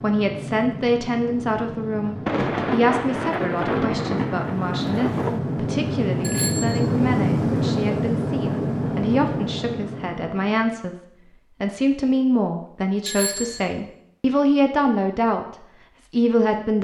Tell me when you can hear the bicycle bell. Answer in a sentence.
You can hear the bicycle bell from 6.2 to 6.8 s and from 13.1 to 13.6 s.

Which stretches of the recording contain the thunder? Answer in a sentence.
You can hear the thunder from 2.2 to 5.4 s.